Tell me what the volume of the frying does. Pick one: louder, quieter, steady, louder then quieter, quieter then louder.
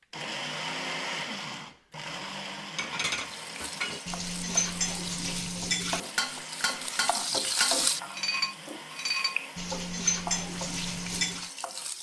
louder then quieter.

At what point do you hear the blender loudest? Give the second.
1 s.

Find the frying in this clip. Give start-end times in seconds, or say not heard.
3.2-11.9.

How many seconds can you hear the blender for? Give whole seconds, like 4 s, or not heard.
12 s.